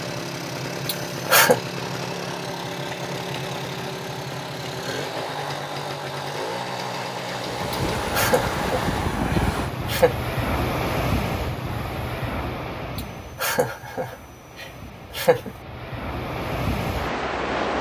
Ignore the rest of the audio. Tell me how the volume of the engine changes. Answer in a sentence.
The loudness of the engine stays about the same.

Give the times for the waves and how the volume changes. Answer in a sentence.
You can hear the waves from 7.3 to 17.7 s, getting quieter then louder.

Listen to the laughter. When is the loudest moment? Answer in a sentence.
The volume of the laughter peaks at 1 second.